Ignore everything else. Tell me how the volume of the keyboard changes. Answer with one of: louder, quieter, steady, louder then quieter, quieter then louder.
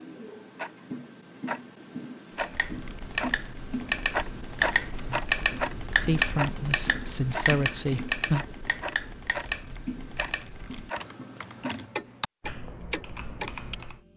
quieter.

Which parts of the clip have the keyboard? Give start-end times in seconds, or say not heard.
2.4-14.0.